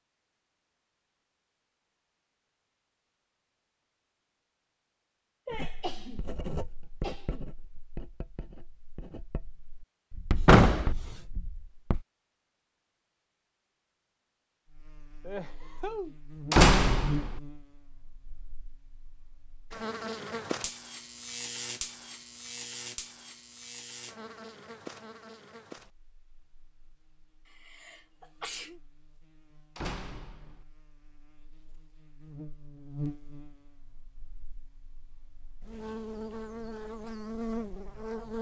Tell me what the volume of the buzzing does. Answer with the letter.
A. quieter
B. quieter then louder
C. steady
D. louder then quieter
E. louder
B.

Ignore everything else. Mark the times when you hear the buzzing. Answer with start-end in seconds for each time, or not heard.
14.7-38.3.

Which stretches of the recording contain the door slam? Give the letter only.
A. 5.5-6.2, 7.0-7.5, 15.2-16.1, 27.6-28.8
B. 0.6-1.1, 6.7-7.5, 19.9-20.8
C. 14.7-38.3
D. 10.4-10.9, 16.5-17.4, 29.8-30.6
D.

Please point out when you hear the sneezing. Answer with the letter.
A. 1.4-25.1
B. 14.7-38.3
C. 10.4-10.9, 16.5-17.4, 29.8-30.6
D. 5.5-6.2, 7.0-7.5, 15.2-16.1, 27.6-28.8
D.